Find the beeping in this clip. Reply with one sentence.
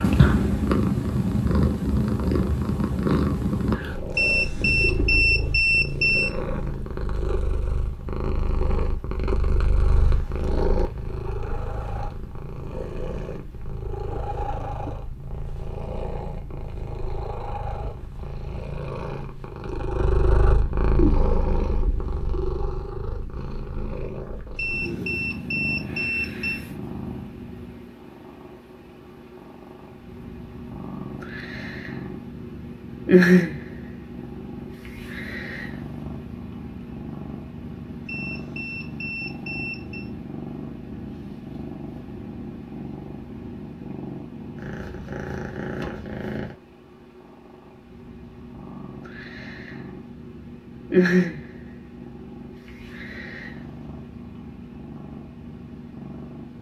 The beeping can be heard from 4.2 to 6.3 s, from 24.6 to 26.6 s and from 38.0 to 40.1 s.